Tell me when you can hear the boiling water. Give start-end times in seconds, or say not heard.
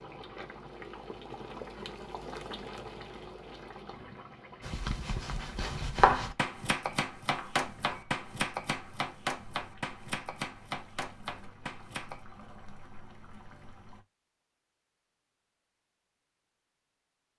0.0-14.1.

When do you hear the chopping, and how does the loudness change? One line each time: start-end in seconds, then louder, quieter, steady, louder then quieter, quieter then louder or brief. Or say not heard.
4.6-12.2 quieter.